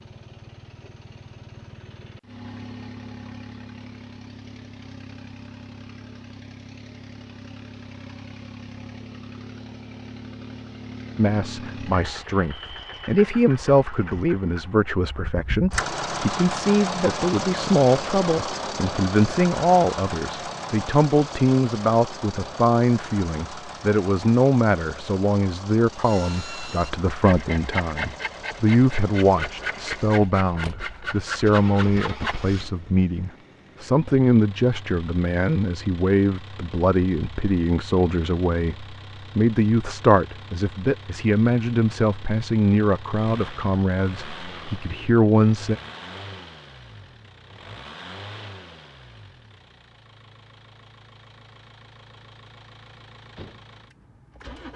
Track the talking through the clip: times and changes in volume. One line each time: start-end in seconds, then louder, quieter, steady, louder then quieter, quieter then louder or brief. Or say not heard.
11.2-45.8 steady.